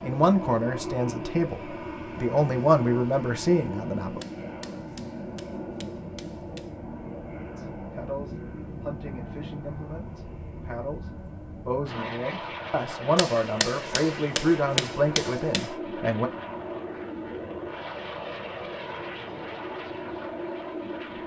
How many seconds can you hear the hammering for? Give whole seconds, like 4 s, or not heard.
5 s.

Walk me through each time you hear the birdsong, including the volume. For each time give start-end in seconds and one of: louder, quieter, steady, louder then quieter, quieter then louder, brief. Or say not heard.
not heard.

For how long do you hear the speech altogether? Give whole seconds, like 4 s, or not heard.
13 s.